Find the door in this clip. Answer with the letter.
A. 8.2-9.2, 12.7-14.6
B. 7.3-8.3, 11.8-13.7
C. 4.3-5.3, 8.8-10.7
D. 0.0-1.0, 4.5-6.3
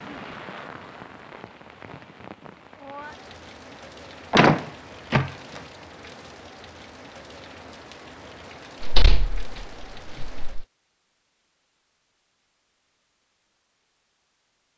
C.